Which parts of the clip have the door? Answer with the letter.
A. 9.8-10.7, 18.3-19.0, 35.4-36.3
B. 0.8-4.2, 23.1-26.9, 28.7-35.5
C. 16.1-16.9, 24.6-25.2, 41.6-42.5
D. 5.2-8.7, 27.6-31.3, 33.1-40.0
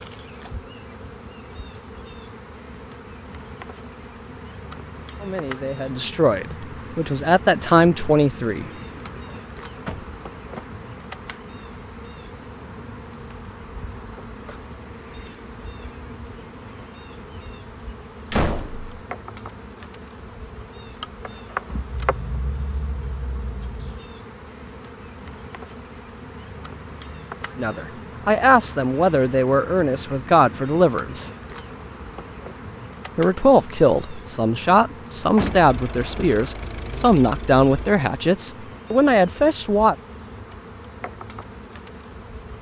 A.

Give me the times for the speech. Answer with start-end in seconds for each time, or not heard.
5.2-8.7, 27.6-31.3, 33.1-40.0.